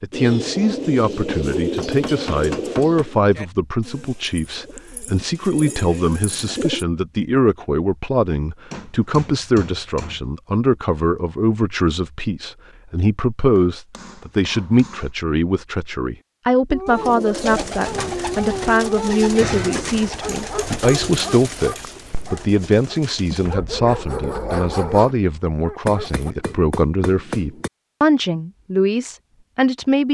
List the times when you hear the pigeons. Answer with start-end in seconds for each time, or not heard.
0.1-6.8, 16.9-23.6.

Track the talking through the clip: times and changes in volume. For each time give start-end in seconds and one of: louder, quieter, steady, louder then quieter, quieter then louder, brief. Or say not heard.
0.0-30.1 steady.